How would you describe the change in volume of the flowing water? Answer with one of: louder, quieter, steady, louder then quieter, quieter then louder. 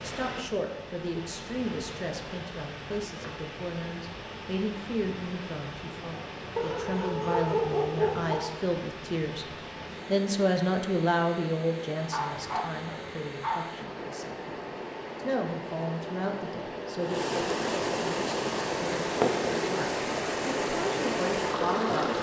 louder.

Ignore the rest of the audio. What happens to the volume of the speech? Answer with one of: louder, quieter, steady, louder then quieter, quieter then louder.
louder then quieter.